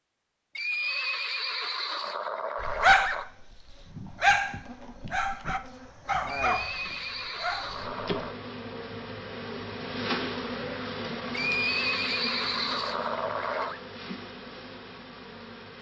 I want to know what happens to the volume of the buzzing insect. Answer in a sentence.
The volume of the buzzing insect goes up, then down.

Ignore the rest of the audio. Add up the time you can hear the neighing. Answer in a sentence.
The neighing can be heard for 7 seconds in total.